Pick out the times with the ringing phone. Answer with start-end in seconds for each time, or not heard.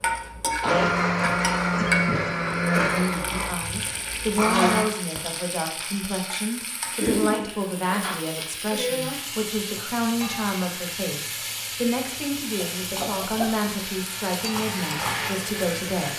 not heard.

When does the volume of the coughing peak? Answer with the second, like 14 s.
7 s.